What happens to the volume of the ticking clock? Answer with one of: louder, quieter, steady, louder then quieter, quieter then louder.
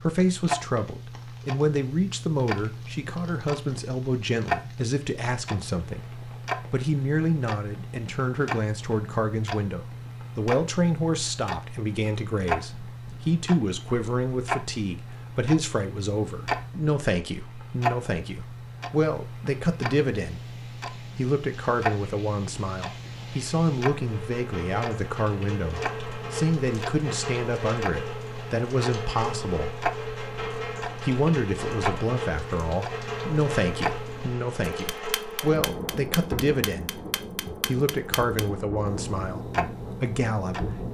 steady.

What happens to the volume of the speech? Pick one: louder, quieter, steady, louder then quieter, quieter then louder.
steady.